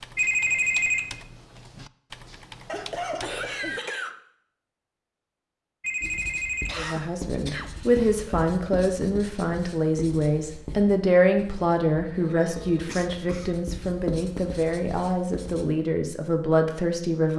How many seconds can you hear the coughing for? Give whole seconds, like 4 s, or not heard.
4 s.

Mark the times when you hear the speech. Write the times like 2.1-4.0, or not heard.
6.8-17.3.